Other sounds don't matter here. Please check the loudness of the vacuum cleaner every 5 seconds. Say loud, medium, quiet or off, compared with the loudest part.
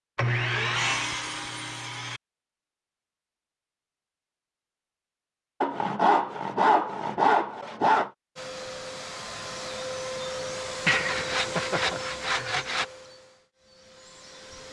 off, loud, loud.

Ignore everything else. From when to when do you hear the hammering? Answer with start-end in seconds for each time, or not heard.
not heard.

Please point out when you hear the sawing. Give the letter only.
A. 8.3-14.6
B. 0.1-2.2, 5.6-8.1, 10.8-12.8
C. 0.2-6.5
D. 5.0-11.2
B.